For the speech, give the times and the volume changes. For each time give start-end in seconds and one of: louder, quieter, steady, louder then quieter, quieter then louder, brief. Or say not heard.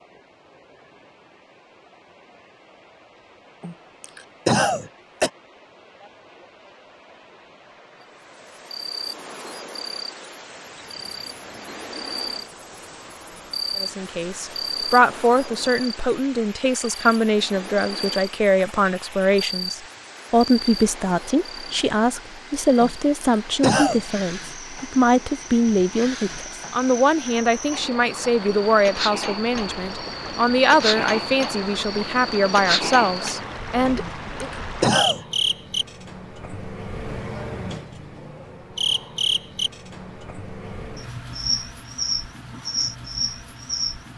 13.8-34.5 steady.